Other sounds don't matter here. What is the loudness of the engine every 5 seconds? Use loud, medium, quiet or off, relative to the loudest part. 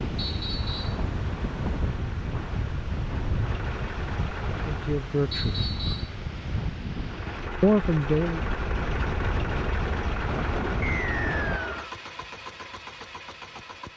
medium, loud, loud.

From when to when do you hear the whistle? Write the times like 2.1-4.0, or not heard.
0.1-1.0, 5.3-6.2, 10.8-11.8.